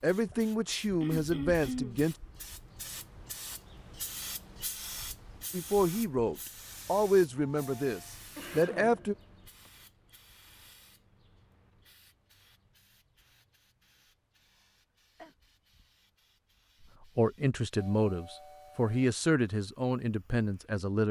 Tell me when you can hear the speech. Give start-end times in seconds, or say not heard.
0.0-2.1, 5.5-9.2, 17.1-21.0.